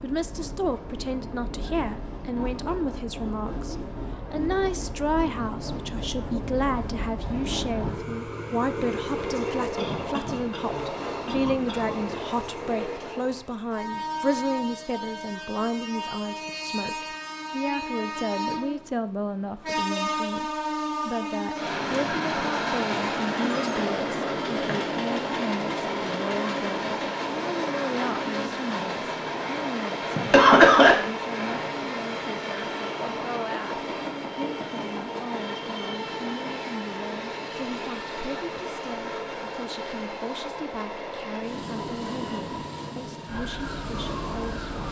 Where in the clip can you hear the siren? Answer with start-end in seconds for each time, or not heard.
43.2-44.8.